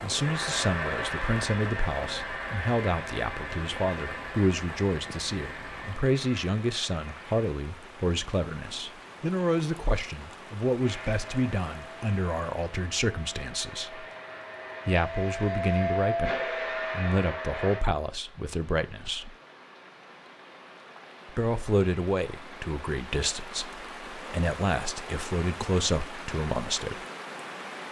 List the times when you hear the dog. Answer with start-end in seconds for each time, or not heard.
not heard.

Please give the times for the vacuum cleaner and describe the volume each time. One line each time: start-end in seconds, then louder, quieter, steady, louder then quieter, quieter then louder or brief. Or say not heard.
0.0-7.5 quieter
10.8-17.9 louder.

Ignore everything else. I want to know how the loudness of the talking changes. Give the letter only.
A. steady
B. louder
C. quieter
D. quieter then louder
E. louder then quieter
A.